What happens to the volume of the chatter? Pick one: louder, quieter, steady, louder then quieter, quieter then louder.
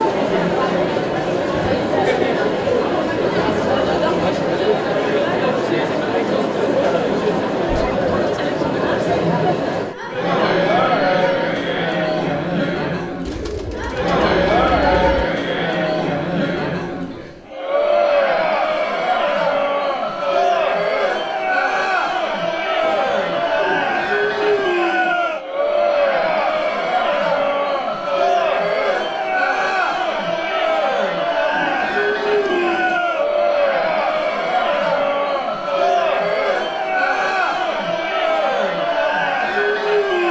steady.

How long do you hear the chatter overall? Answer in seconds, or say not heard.
40 s.